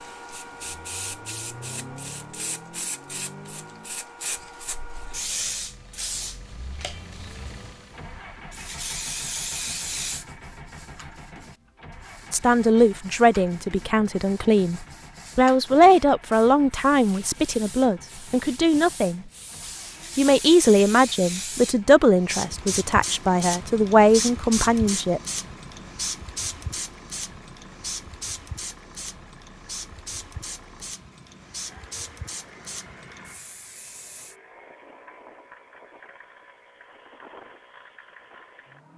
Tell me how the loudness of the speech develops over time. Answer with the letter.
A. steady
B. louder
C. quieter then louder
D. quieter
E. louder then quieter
A.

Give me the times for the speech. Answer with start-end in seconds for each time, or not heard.
12.3-19.2, 20.1-25.2.